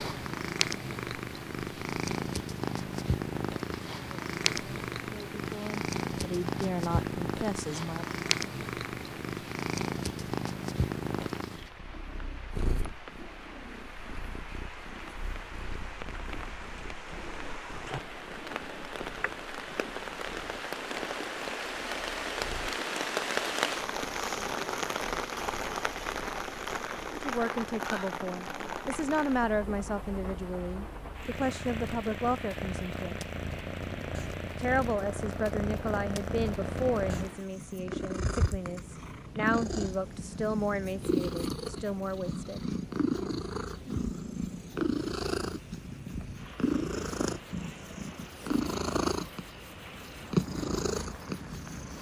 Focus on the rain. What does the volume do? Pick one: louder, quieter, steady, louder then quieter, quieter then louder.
louder then quieter.